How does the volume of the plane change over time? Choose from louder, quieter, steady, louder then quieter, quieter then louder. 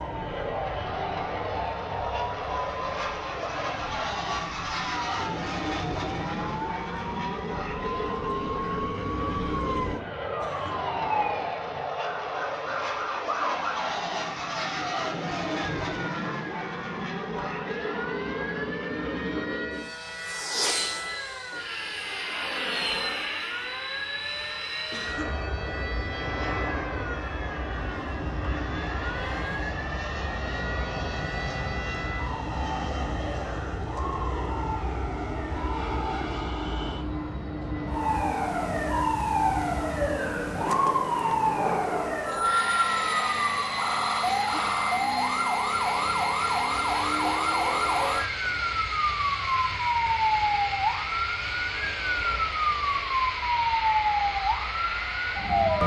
steady.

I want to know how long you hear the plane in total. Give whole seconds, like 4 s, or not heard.
56 s.